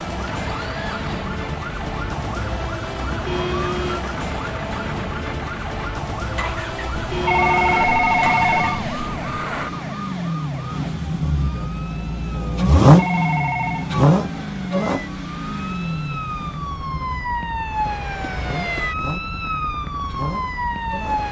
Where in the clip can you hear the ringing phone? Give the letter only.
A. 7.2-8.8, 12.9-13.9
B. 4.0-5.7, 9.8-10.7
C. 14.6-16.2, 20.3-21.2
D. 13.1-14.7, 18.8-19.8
A.